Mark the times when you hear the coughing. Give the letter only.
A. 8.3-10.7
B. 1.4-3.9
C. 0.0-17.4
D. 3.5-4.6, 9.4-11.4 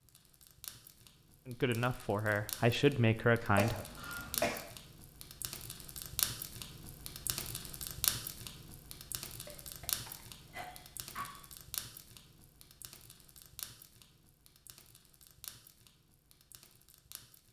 D.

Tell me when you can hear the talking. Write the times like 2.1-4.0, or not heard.
1.4-3.9.